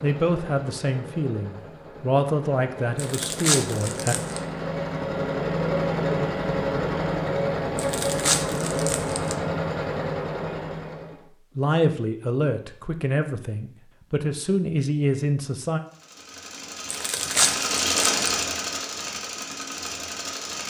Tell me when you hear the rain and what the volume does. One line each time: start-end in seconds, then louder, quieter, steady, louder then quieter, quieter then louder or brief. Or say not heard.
not heard.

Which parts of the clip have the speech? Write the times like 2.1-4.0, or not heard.
0.0-4.2, 11.6-15.8.